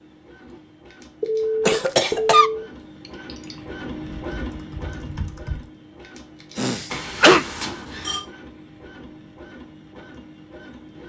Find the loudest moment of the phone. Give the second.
2 s.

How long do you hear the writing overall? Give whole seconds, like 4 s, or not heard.
not heard.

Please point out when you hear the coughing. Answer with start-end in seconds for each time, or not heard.
1.6-2.5, 6.5-7.5.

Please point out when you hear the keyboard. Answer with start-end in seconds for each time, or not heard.
3.0-5.7.